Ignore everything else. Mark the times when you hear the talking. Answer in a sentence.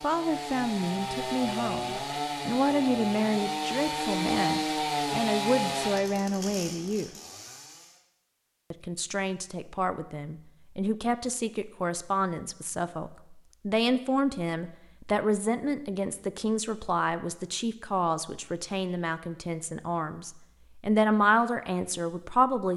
You can hear the talking from 0.0 to 7.1 s and from 8.7 to 22.7 s.